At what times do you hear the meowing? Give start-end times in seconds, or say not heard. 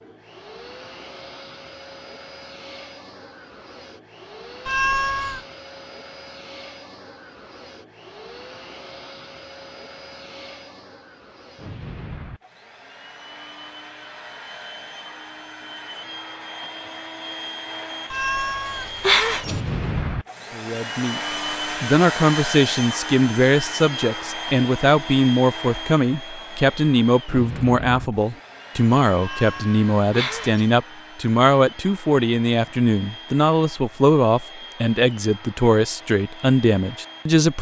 4.7-5.5, 18.1-19.6, 29.2-30.6.